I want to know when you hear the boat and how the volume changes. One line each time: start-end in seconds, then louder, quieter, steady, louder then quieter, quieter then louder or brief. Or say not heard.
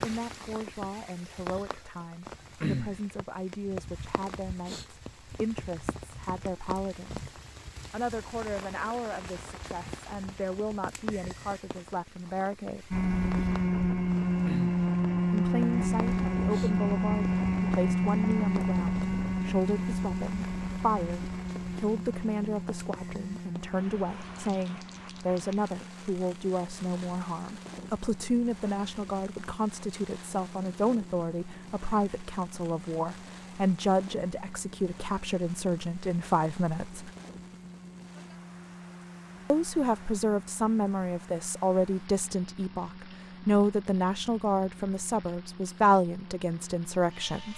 12.9-47.5 quieter.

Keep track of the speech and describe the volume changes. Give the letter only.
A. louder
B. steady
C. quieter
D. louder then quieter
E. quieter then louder
A.